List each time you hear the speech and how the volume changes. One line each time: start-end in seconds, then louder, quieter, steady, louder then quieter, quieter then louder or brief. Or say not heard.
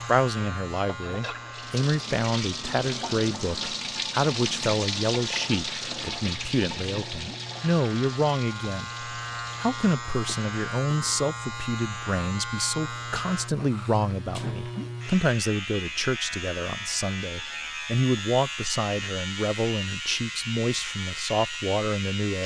0.1-22.4 steady.